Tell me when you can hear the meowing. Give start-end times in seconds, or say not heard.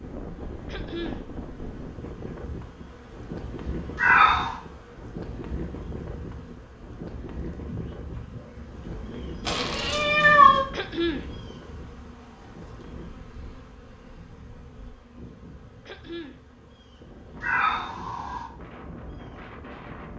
4.0-4.5, 9.4-10.7, 17.4-18.4.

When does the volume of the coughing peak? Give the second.
11 s.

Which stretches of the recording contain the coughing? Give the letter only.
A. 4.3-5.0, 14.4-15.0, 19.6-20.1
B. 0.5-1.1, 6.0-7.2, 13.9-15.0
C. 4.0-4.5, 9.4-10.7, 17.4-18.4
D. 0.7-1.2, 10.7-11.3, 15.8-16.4
D.